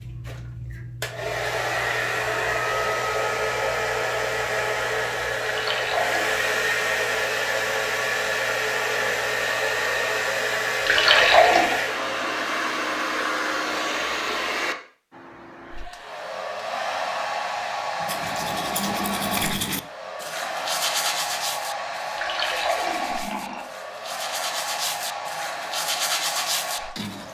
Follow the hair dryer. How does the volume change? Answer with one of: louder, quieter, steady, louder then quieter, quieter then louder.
quieter.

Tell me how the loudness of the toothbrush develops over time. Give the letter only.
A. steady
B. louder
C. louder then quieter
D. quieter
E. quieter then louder
E.